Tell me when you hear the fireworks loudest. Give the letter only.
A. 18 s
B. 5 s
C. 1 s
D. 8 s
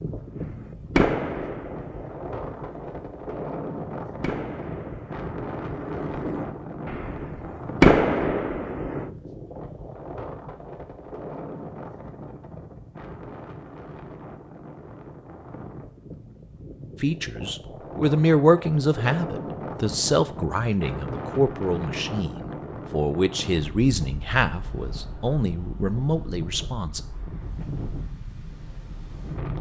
D.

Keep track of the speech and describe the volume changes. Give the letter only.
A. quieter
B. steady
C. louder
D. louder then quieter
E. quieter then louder
A.